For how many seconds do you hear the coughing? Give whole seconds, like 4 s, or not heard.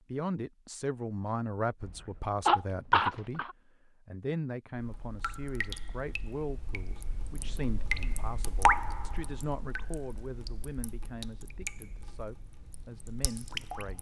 2 s.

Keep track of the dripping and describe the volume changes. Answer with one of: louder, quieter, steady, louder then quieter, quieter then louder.
louder then quieter.